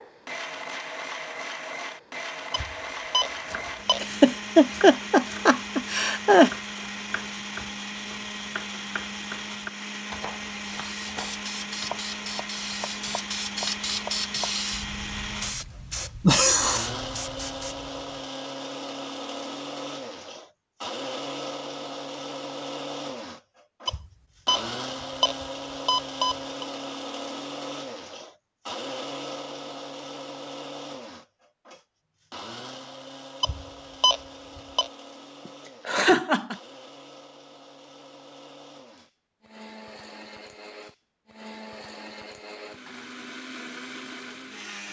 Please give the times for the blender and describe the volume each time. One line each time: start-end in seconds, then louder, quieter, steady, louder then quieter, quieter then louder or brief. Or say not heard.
0.0-44.8 quieter.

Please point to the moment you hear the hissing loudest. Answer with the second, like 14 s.
14 s.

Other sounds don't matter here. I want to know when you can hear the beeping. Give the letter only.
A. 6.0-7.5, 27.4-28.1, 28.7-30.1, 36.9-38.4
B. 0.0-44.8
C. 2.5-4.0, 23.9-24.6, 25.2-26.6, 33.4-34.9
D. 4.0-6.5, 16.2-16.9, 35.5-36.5
C.